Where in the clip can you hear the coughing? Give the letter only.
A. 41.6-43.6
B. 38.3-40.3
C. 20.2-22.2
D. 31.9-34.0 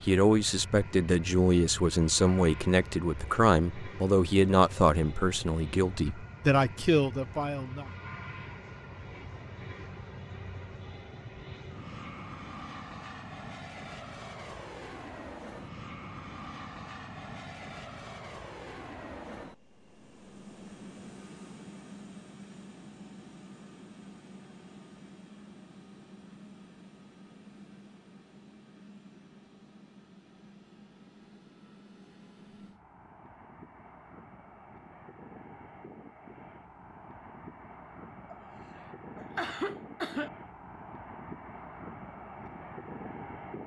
B.